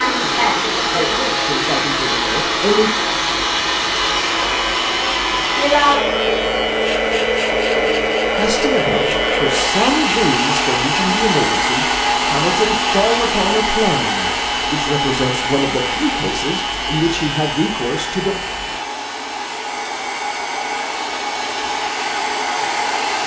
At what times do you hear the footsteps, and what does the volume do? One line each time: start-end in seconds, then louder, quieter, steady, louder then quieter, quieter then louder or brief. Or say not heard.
not heard.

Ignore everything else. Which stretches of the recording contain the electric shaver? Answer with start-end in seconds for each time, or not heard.
0.1-18.9.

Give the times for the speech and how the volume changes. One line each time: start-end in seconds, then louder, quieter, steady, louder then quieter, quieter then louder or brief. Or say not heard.
0.1-2.9 brief
8.3-18.4 steady.